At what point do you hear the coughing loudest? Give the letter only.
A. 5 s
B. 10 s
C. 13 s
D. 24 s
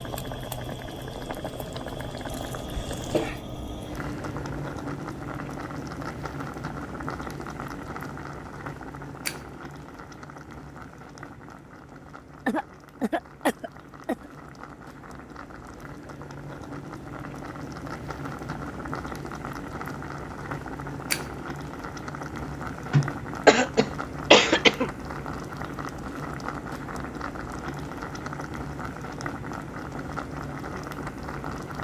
D.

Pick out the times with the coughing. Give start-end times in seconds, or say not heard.
2.6-4.7, 12.4-14.3, 22.9-24.9.